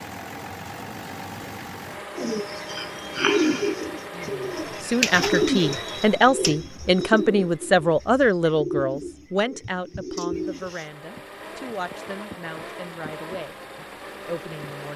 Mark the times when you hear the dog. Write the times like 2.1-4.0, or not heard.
not heard.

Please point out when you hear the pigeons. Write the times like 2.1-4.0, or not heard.
2.1-10.8.